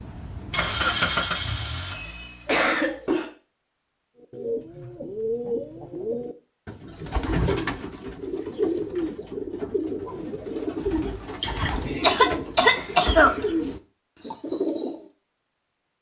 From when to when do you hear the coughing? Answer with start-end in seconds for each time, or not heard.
1.9-3.3, 11.4-13.3.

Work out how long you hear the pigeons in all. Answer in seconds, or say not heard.
11 s.